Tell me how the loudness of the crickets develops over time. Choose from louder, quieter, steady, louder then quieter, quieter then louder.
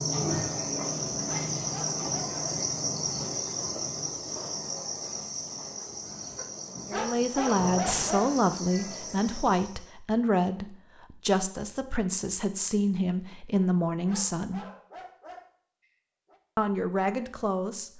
quieter.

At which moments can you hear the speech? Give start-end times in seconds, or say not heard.
6.8-14.7, 16.6-17.9.